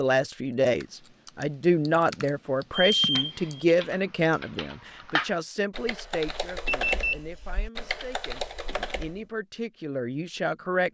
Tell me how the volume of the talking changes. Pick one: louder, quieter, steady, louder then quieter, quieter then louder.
quieter then louder.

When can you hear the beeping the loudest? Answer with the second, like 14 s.
3 s.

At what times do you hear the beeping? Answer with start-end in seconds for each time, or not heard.
2.8-3.8, 6.7-7.2.